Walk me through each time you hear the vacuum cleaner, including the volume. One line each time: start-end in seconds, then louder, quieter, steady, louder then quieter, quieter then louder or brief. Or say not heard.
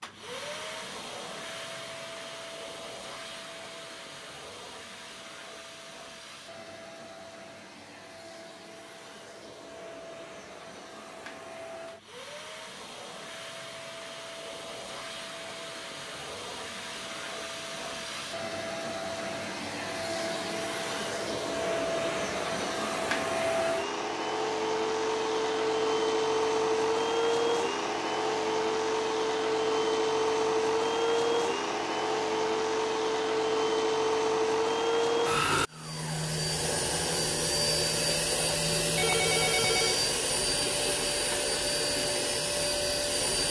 0.0-43.4 louder.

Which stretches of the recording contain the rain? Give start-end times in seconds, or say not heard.
not heard.